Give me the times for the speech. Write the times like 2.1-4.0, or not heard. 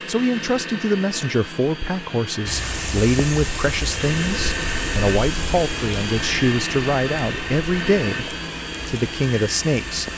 0.1-10.1.